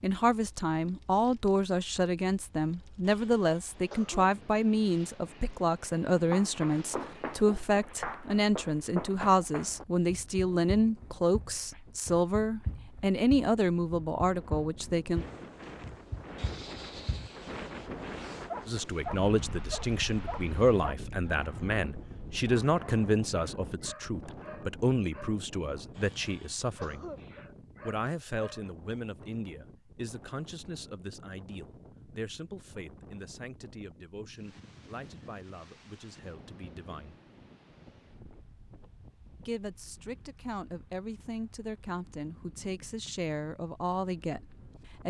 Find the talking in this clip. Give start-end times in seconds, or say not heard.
0.0-15.2, 18.6-27.1, 27.9-37.1, 39.4-45.0.